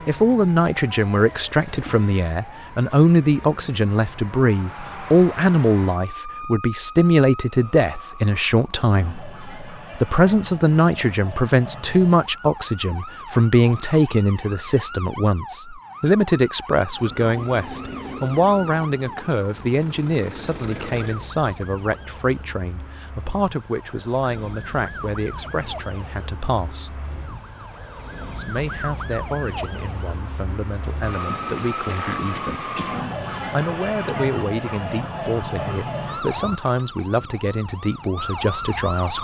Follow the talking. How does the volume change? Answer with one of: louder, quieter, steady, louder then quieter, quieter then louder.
quieter.